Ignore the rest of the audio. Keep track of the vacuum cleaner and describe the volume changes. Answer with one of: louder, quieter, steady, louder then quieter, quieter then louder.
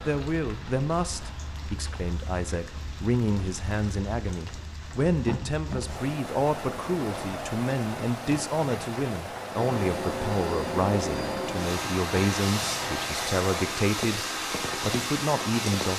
steady.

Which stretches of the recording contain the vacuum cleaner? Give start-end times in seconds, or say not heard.
9.5-15.9.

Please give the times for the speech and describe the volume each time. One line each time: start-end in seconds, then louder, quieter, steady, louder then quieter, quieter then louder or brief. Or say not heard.
0.0-15.9 steady.